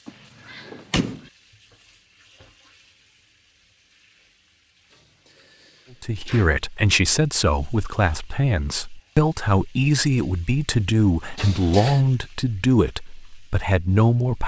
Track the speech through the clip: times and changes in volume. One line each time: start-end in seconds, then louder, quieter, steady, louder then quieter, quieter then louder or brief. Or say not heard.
6.0-14.4 steady.